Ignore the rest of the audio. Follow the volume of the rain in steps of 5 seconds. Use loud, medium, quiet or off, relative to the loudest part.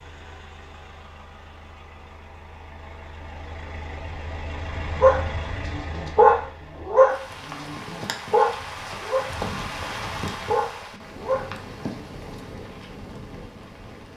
off, loud, loud.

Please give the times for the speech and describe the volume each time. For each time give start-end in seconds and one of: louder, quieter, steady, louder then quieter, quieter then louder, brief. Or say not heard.
not heard.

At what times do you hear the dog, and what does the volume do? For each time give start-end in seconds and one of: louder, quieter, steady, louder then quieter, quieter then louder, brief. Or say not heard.
5.0-12.3 quieter.